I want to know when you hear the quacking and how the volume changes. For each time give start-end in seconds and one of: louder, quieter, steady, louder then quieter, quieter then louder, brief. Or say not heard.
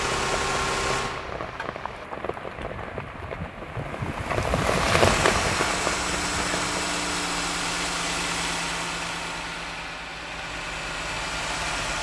not heard.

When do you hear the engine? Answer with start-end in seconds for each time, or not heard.
0.0-2.1, 5.0-11.9.